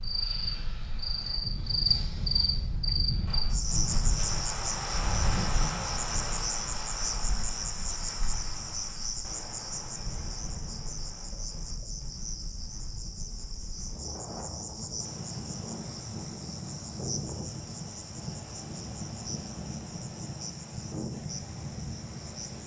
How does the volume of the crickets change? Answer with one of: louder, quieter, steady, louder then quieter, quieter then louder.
quieter.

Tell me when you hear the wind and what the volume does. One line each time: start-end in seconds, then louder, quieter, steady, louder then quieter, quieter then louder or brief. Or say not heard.
0.0-22.6 quieter then louder.